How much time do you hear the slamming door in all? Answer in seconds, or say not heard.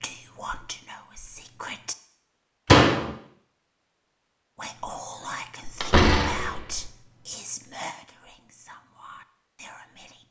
2 s.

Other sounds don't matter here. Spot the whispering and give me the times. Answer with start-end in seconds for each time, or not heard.
0.0-1.9, 4.5-10.2.